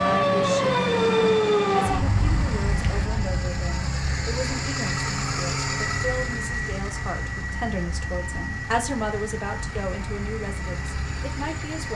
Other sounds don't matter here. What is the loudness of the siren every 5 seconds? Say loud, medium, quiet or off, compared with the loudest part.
loud, quiet, quiet.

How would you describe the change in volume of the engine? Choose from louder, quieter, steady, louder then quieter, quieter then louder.
louder then quieter.